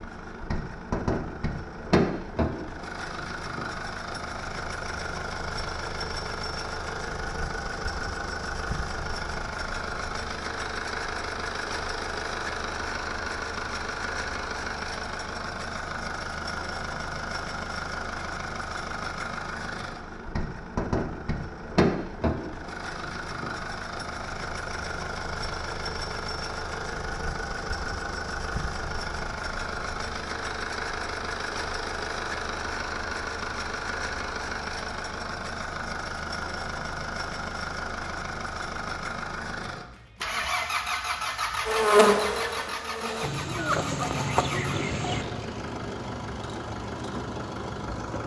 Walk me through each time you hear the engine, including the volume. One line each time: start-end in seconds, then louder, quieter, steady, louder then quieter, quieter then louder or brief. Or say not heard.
0.0-48.2 steady.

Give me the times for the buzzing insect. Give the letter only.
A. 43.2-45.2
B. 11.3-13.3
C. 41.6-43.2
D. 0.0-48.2
C.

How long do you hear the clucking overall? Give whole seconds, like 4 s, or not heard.
2 s.